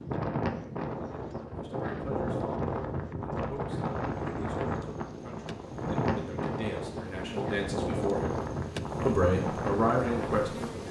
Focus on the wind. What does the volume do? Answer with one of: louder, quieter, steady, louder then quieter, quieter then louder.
steady.